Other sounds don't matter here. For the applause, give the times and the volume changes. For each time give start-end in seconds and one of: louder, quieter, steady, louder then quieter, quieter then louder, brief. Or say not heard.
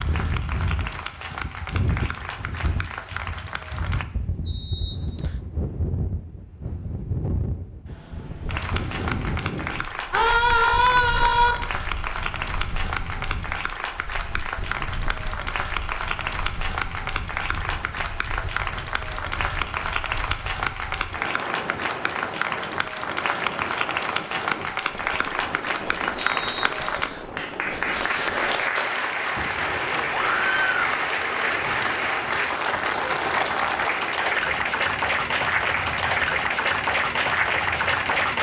0.0-4.0 steady
8.4-38.3 louder.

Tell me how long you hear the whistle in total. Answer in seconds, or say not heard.
2 s.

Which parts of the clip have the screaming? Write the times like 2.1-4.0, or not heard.
10.1-11.6, 30.1-30.8.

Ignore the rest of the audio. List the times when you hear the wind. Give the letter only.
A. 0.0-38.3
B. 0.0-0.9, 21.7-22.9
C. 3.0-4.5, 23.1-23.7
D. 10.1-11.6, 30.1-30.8
A.